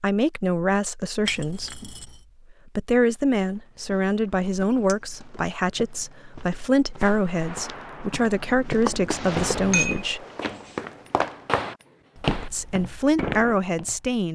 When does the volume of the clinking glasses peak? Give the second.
10 s.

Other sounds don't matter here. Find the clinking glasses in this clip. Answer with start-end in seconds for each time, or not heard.
1.2-2.1, 4.8-5.4, 9.7-10.8.